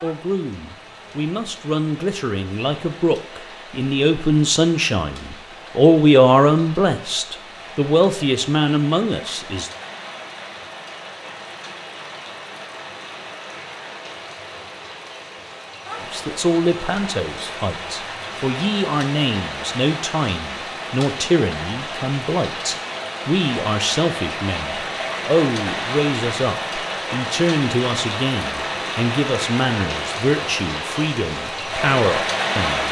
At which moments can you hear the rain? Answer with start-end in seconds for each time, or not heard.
0.0-32.8.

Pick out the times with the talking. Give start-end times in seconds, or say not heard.
0.0-9.7, 16.0-32.8.